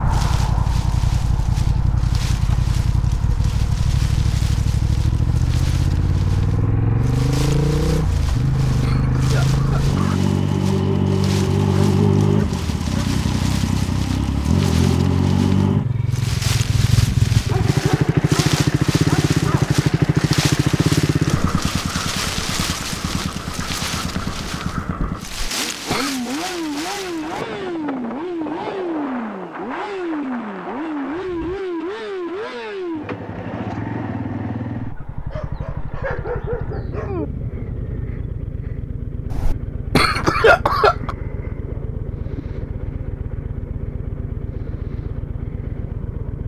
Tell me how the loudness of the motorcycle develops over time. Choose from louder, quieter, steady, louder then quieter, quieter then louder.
quieter.